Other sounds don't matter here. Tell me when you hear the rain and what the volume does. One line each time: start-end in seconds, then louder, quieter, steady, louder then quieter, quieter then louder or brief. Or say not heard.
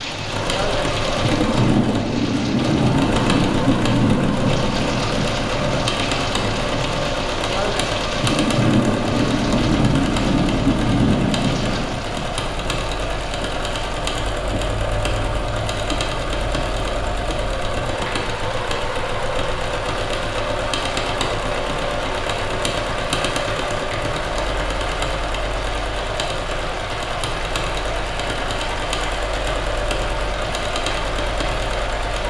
0.0-32.2 quieter.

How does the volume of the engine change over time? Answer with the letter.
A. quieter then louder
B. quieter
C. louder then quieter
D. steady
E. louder
D.